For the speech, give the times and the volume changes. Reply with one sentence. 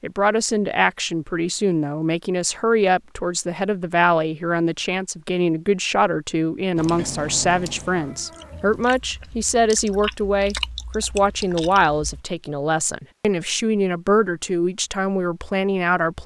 You can hear the speech from 0.0 to 16.2 s, at a steady volume.